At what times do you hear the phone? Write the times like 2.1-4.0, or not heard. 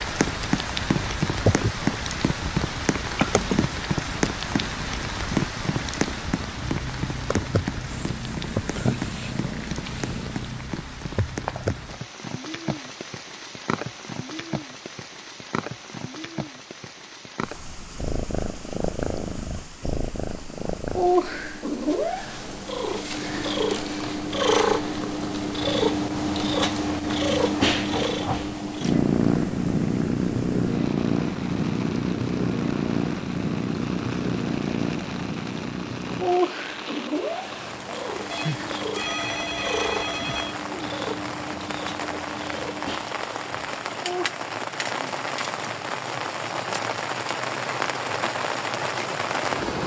38.3-40.5.